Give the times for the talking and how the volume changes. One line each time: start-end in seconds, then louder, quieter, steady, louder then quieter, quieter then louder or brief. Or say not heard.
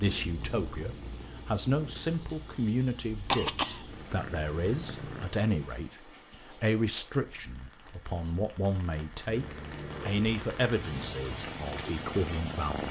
0.0-12.8 steady.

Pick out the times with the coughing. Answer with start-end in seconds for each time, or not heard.
3.1-3.9, 9.3-10.3.